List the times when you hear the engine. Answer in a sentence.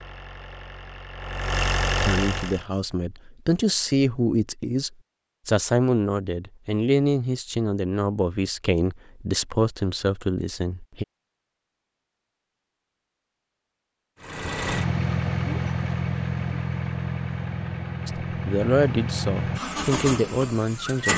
You can hear the engine from 0.0 to 2.6 s and from 14.2 to 21.1 s.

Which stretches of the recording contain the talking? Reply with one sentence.
You can hear the talking from 2.0 to 11.1 s and from 18.1 to 21.1 s.